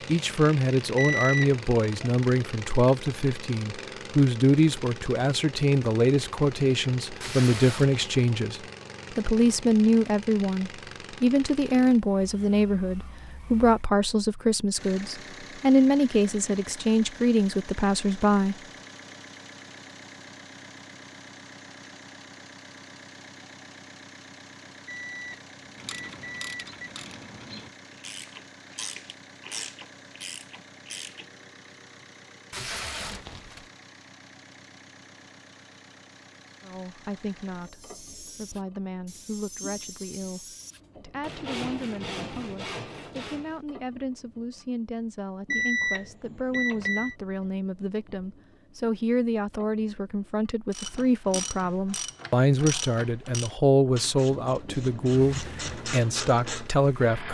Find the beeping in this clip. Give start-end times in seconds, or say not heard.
0.9-1.6, 24.9-26.9, 45.5-47.1.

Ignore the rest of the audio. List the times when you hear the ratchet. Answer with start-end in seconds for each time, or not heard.
25.8-31.2, 50.7-56.7.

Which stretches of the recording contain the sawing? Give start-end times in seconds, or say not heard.
37.6-43.6.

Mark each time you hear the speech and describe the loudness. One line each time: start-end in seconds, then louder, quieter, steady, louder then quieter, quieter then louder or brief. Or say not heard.
0.1-18.6 steady
36.6-57.2 louder.